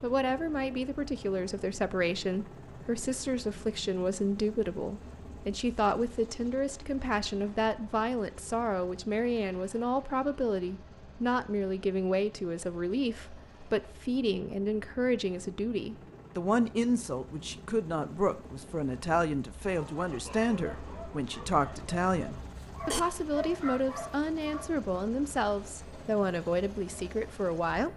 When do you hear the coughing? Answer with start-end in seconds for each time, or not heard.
22.4-23.0.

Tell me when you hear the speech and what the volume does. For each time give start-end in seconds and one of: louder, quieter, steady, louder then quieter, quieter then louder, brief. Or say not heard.
0.0-27.9 steady.